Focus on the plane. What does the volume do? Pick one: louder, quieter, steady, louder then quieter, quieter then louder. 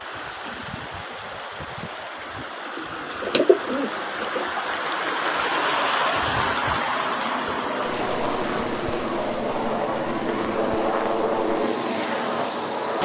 louder.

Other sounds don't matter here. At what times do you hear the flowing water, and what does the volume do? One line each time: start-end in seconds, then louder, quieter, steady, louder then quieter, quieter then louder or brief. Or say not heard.
0.0-12.9 louder then quieter.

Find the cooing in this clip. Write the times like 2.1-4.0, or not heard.
2.8-4.5.